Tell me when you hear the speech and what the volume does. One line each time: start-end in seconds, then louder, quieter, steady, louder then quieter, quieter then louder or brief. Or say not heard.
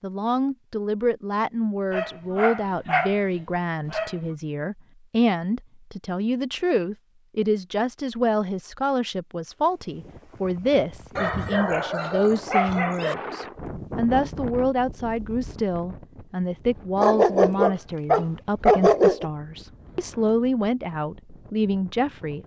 0.0-22.4 steady.